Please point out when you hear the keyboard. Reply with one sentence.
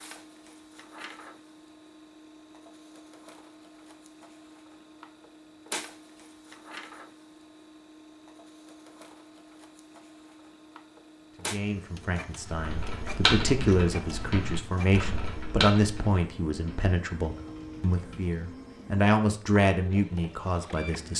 You can hear the keyboard from 12.4 to 18.4 s.